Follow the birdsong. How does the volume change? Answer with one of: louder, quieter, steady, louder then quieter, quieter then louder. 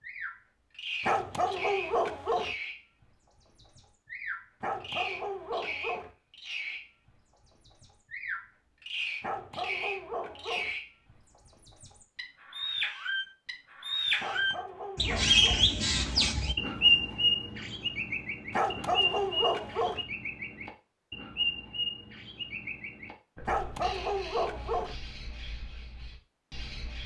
louder then quieter.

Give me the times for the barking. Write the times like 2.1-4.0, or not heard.
1.1-2.5, 4.6-6.1, 9.2-10.7, 14.2-15.7, 18.5-20.1, 23.4-24.9.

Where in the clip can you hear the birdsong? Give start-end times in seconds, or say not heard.
0.0-27.0.